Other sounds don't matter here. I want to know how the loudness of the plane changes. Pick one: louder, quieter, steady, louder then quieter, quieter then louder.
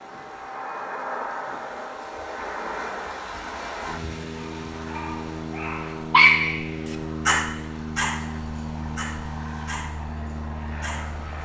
steady.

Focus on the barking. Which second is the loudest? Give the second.
6 s.